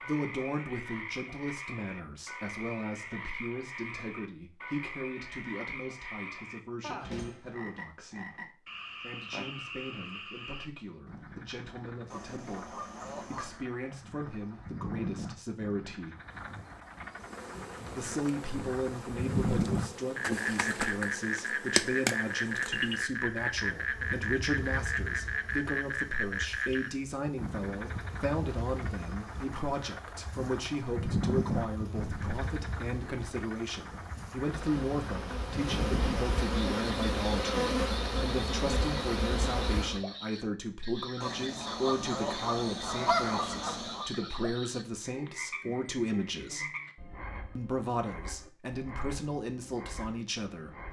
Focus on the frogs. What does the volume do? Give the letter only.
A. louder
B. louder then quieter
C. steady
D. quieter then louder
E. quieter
B.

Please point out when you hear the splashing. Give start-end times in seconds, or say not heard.
not heard.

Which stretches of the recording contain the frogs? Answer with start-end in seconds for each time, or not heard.
0.0-50.8.